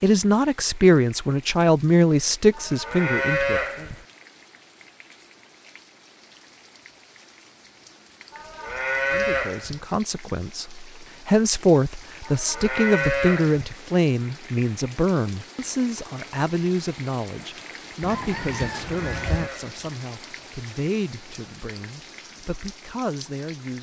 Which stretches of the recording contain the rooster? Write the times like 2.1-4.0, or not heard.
18.0-19.5.